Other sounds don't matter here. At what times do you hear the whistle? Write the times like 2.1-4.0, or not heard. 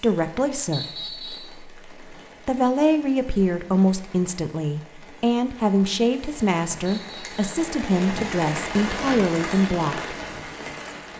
0.7-1.6, 6.8-7.5.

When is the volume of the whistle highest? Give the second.
1 s.